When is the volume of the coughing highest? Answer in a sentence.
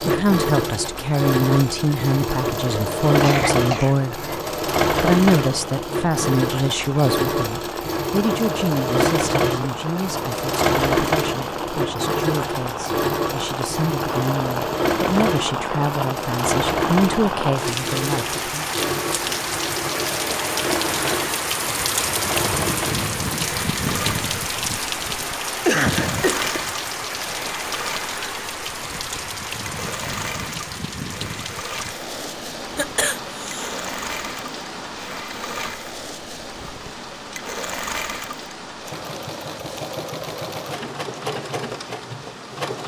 The loudest moment of the coughing is at 26 seconds.